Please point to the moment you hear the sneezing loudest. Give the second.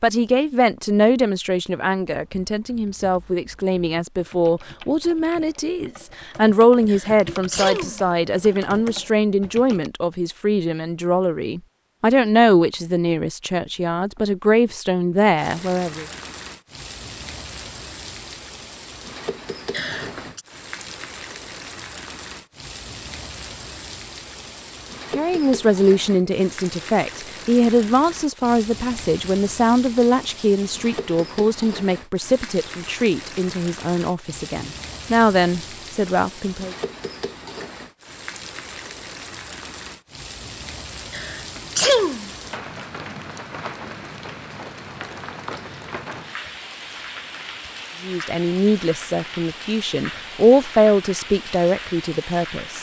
42 s.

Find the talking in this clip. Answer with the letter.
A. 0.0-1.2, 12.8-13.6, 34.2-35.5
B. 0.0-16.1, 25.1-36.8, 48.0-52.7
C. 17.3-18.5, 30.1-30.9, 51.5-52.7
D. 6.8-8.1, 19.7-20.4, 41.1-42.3
B.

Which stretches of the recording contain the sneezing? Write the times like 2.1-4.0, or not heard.
6.8-8.1, 19.7-20.4, 41.1-42.3.